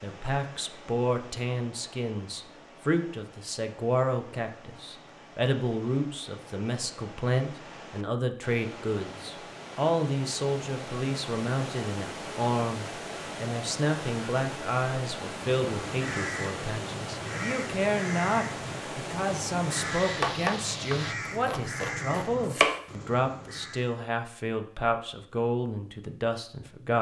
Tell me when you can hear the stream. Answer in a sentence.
You can hear the stream from 0.0 to 21.1 s.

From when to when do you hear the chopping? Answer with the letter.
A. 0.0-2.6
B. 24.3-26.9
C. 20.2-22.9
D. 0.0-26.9
C.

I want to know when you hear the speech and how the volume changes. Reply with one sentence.
The speech can be heard from 0.0 to 26.9 s, at a steady volume.